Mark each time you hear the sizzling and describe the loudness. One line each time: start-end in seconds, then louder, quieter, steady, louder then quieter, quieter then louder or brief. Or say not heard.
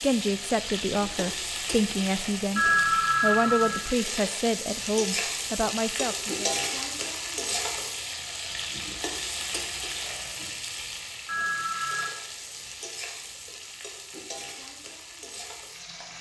0.0-16.1 quieter.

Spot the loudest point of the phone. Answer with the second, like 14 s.
3 s.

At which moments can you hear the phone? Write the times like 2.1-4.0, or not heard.
2.5-3.9, 11.2-12.1.